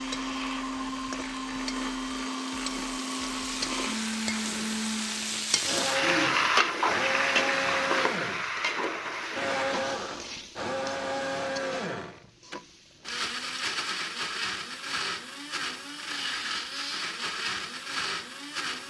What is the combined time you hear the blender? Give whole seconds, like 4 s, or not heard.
19 s.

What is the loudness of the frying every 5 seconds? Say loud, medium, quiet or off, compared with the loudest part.
medium, loud, quiet, off.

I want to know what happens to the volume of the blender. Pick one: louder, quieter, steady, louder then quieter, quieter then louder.
steady.